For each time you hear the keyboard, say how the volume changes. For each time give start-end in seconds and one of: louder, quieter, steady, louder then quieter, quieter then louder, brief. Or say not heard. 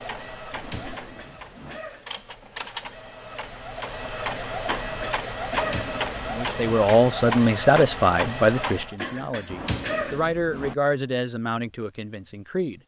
not heard.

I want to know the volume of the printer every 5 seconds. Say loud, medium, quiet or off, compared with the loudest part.
medium, loud, off.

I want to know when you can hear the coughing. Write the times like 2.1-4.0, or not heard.
0.8-2.1, 4.7-5.9, 8.9-10.2.